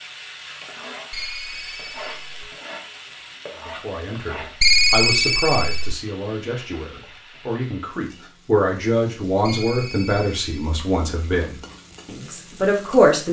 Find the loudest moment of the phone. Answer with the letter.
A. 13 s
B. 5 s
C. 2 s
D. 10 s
B.